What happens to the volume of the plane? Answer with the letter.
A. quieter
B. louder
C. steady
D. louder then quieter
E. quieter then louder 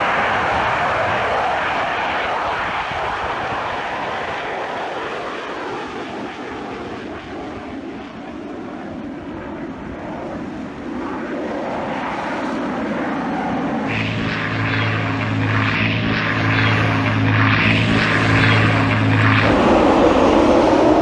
E.